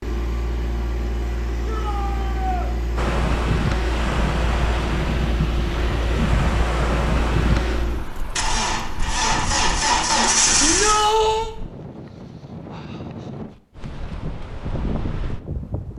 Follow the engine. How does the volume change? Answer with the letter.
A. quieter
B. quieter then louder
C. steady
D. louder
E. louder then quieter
D.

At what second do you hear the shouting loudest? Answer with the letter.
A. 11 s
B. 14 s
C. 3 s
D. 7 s
A.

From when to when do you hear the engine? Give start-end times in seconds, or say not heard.
0.0-11.1.